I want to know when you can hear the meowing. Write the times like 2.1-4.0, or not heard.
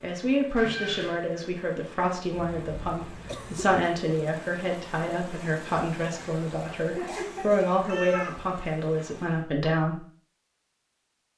0.6-1.2, 6.8-8.3.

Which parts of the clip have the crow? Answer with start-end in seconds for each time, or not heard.
not heard.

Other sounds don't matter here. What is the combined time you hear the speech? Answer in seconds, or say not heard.
10 s.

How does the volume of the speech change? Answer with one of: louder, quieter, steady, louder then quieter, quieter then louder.
steady.